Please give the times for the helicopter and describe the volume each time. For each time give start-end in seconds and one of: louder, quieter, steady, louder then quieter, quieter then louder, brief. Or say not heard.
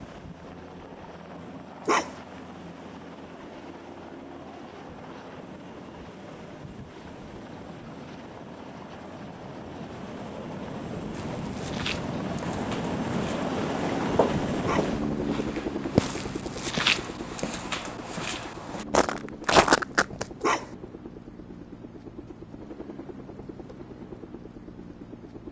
0.0-25.4 louder then quieter.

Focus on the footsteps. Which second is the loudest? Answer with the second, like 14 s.
20 s.